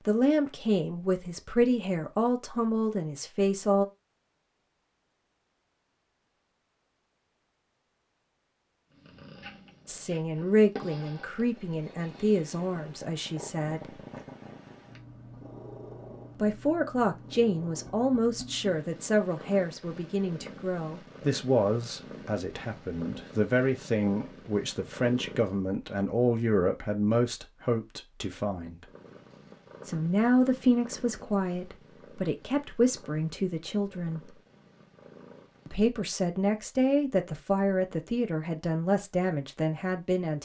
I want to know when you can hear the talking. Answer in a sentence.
You can hear the talking from 0.0 to 3.9 s, from 9.8 to 14.0 s, from 16.4 to 28.9 s, from 29.9 to 34.4 s and from 35.6 to 40.4 s.